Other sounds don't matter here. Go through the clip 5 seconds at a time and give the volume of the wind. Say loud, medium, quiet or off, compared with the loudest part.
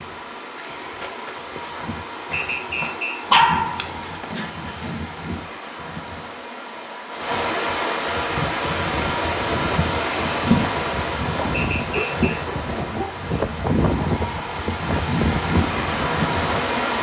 off, medium, loud, loud.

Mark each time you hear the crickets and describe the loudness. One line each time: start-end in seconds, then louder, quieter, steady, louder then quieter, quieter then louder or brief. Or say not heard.
0.0-16.9 louder.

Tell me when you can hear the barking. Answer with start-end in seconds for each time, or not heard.
3.3-5.0, 11.2-13.2.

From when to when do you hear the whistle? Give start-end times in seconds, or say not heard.
2.3-3.2, 11.6-12.4.